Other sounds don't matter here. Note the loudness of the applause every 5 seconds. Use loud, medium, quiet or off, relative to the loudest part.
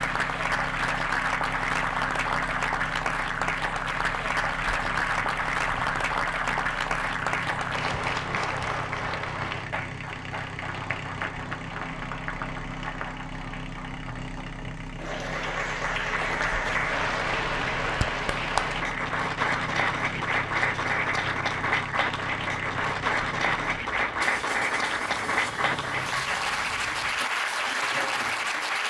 loud, loud, medium, loud, loud, loud.